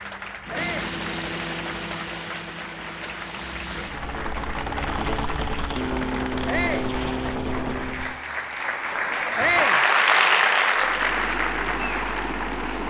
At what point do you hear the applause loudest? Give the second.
10 s.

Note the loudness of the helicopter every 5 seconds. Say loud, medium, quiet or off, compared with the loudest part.
medium, loud, loud.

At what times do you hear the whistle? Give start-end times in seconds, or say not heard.
not heard.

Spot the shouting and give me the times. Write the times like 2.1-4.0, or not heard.
0.5-0.9, 6.5-6.9, 9.3-9.8.